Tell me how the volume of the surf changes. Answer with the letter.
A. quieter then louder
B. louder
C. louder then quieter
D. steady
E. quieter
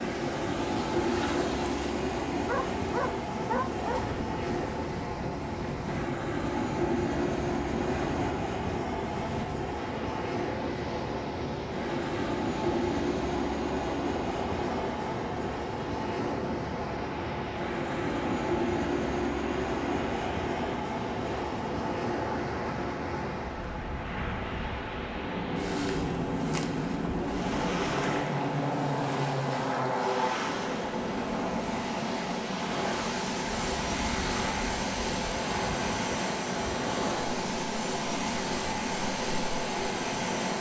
D.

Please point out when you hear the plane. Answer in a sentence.
The plane can be heard from 0.0 to 40.5 s.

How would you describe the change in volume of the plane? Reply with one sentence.
The loudness of the plane stays about the same.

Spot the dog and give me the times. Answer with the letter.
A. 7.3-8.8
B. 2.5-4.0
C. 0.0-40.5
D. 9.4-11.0
B.